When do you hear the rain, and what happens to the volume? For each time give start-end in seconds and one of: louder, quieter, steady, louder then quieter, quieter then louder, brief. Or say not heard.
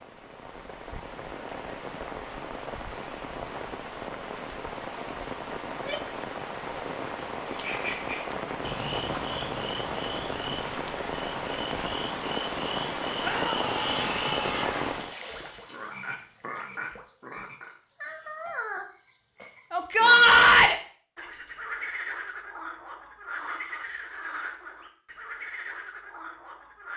0.0-15.2 louder.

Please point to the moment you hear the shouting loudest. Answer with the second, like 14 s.
20 s.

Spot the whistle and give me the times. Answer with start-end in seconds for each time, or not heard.
not heard.